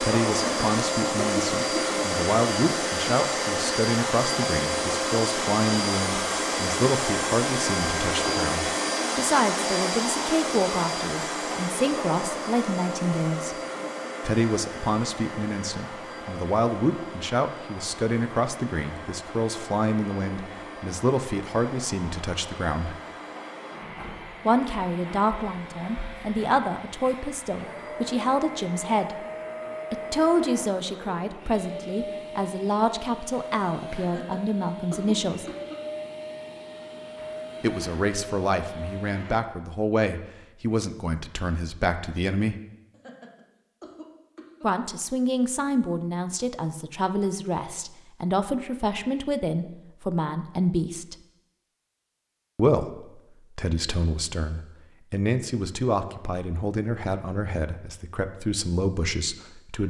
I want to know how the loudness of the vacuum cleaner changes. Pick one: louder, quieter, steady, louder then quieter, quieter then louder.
quieter.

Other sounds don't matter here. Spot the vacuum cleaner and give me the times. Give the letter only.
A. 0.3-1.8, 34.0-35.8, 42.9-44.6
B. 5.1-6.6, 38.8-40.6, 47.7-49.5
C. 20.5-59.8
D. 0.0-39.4
D.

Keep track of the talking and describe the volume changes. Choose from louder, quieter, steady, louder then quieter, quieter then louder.
steady.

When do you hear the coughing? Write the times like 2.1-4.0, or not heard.
0.3-1.8, 34.0-35.8, 42.9-44.6.